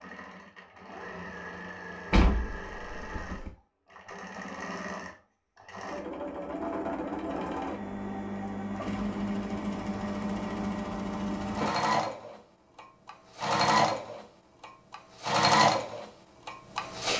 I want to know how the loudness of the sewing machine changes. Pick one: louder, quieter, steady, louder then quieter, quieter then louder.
louder.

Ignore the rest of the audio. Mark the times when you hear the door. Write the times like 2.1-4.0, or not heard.
2.1-3.5.